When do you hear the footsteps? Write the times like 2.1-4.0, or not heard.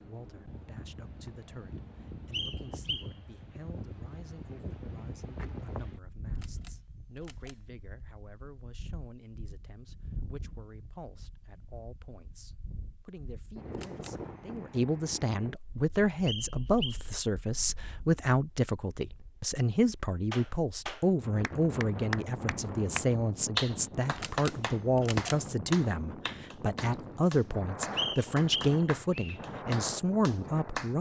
not heard.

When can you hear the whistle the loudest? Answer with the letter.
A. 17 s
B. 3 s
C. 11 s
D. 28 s
D.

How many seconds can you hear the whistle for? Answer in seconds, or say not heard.
3 s.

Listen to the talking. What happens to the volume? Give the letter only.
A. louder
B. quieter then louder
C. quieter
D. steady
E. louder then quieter
A.